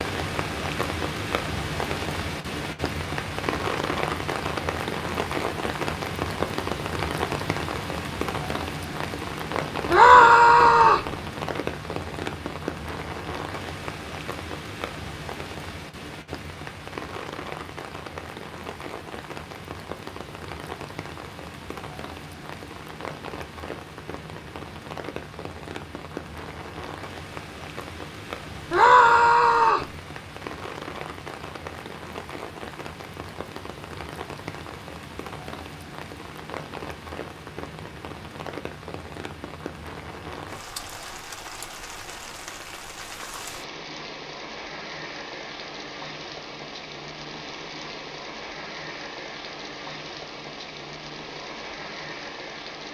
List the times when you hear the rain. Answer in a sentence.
You can hear the rain from 0.0 to 52.8 s.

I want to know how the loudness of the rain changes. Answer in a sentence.
The volume of the rain goes down.